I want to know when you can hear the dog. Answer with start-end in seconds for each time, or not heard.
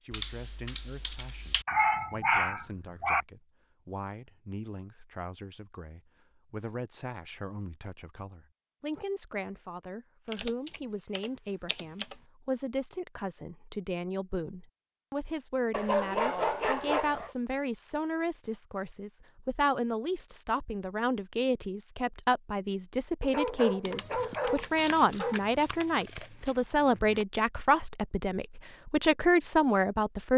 1.6-3.2, 15.7-17.3, 23.2-25.7.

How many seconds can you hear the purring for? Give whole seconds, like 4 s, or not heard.
not heard.